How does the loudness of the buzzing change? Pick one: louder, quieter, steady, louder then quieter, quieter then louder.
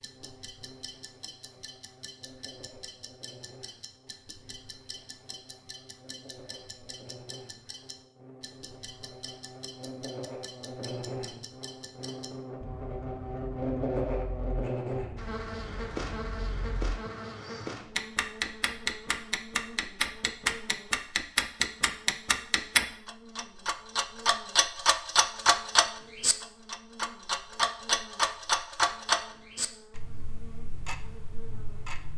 louder then quieter.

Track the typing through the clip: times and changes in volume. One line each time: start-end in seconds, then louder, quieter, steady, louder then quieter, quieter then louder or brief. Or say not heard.
not heard.